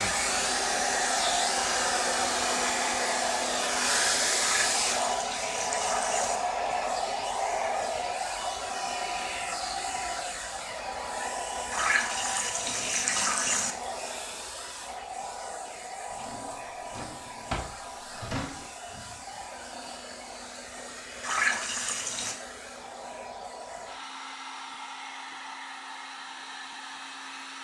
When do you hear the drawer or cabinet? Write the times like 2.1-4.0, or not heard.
16.1-18.7.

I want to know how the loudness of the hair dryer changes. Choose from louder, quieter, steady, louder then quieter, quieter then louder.
quieter.